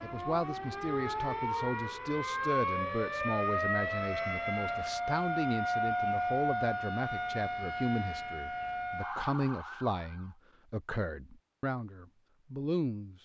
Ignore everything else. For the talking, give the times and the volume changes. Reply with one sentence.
You can hear the talking from 0.0 to 13.2 s, at a steady volume.